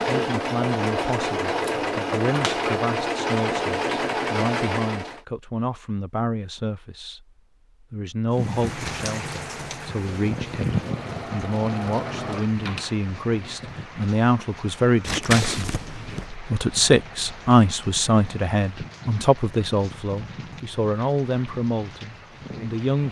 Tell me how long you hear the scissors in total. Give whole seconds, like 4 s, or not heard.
2 s.